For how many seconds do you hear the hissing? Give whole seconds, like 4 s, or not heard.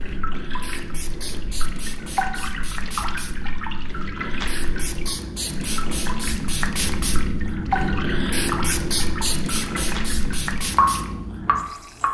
12 s.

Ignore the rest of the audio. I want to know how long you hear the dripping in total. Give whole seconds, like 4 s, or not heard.
12 s.